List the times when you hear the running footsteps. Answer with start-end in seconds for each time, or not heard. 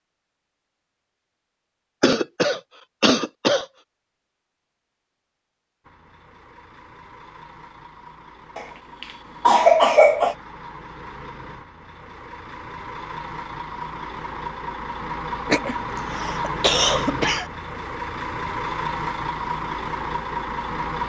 not heard.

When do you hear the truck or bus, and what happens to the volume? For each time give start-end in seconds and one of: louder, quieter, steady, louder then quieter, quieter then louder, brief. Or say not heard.
5.8-21.0 louder.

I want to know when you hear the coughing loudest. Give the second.
10 s.